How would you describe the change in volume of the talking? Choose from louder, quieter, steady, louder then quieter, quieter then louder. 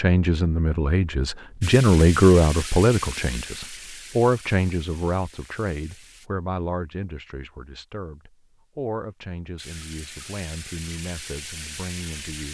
quieter.